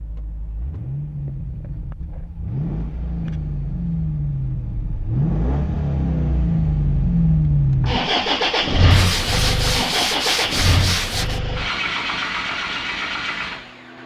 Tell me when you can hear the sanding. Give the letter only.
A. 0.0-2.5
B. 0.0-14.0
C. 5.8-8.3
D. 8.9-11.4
D.